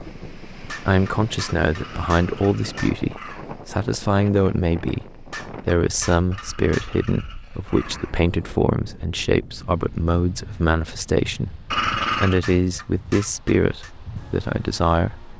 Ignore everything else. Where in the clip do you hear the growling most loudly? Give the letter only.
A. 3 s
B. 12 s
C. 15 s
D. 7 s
B.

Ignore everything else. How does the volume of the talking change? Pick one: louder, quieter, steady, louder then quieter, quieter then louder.
steady.